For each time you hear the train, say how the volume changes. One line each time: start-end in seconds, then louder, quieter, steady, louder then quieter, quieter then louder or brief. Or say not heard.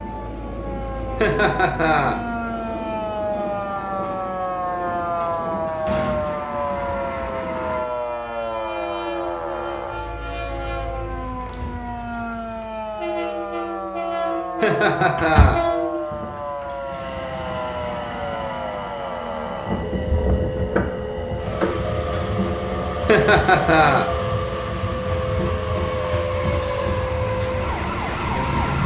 0.0-28.8 louder.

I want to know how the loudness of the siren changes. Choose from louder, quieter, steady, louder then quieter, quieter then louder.
steady.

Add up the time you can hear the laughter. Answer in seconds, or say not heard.
3 s.